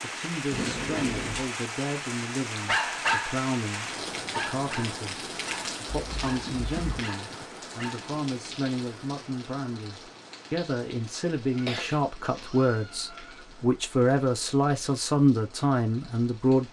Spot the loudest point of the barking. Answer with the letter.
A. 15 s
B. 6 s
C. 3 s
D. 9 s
C.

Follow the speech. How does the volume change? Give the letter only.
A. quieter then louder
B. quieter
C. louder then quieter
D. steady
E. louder
E.